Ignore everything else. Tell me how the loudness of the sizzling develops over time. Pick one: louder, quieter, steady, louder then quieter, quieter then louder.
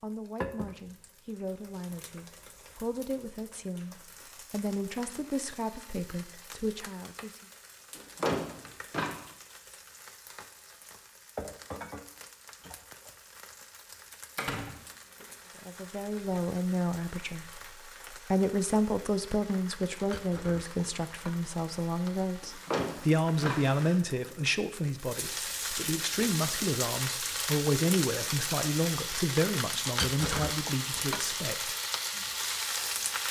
louder.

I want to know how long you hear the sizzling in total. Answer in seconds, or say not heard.
33 s.